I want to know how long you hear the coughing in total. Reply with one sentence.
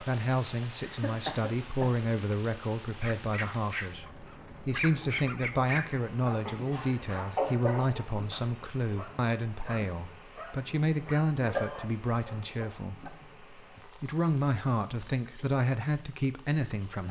You can hear the coughing for 4 seconds altogether.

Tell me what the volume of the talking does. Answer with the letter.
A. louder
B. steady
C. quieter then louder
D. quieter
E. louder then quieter
B.